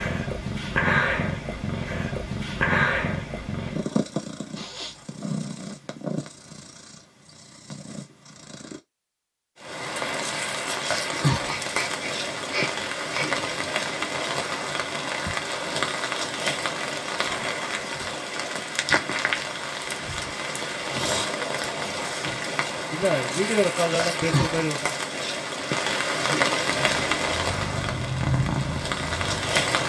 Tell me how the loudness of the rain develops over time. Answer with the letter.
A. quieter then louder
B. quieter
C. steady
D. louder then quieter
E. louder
C.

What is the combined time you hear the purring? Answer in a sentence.
You can hear the purring for 12 seconds altogether.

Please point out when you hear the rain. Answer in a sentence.
You can hear the rain from 9.6 to 29.8 s.